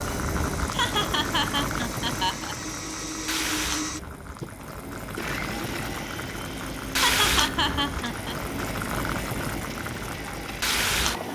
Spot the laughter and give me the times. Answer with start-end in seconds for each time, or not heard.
0.7-2.5, 7.0-8.3.